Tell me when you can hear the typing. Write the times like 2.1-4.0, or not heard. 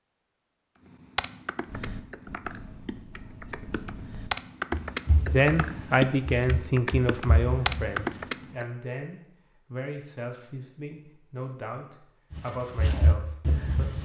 0.9-8.7.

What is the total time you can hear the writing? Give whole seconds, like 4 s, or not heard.
8 s.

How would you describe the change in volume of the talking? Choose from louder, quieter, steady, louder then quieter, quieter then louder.
quieter.